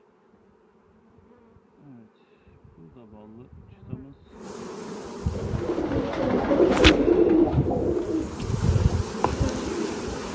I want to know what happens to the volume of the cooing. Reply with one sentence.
The loudness of the cooing goes up, then down.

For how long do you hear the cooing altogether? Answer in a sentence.
The cooing can be heard for 5 seconds in total.